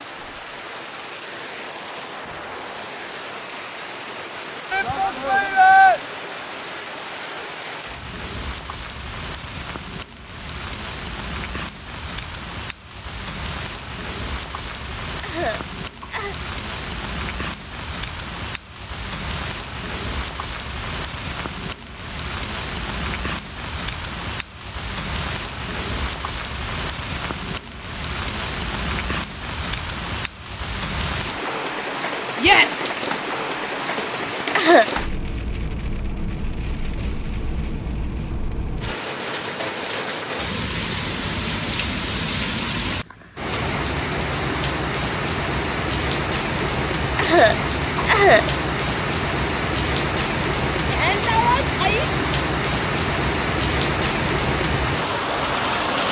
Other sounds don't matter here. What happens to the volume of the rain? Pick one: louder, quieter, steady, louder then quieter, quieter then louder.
louder.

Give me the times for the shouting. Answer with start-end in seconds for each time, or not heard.
4.7-6.0, 32.4-32.9, 50.9-52.0.